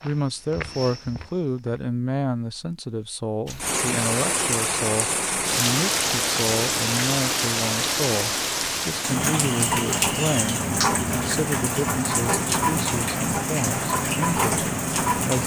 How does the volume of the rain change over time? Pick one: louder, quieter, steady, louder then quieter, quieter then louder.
steady.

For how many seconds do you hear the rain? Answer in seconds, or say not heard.
12 s.